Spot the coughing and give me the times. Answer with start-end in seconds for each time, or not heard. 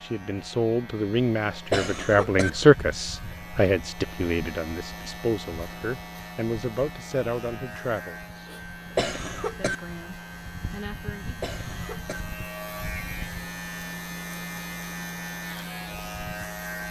1.7-2.5, 8.9-9.8, 11.4-12.2.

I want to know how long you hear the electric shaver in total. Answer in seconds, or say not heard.
17 s.